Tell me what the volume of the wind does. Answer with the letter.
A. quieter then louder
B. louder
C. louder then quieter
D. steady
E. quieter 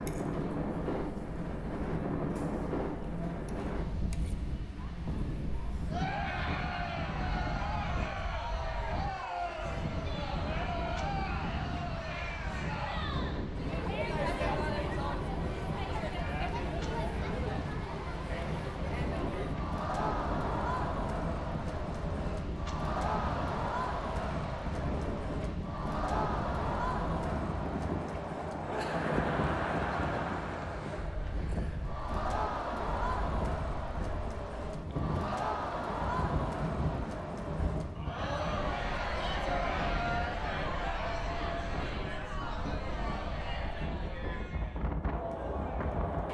D.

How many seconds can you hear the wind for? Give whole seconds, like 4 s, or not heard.
46 s.